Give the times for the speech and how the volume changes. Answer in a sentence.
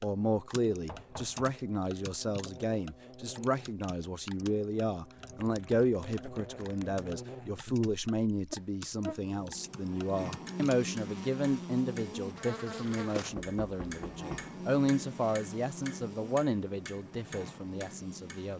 The speech can be heard from 0.0 to 18.5 s, at a steady volume.